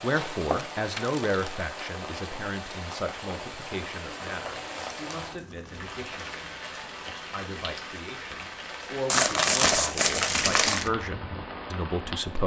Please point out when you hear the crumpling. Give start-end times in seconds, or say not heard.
0.1-1.6, 4.5-5.9, 9.1-10.9.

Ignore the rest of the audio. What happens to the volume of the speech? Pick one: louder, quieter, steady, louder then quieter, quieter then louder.
quieter then louder.